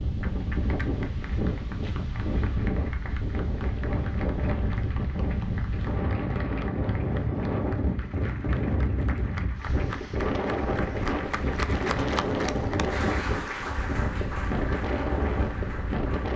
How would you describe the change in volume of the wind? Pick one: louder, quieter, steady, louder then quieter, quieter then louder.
steady.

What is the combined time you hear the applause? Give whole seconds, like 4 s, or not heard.
16 s.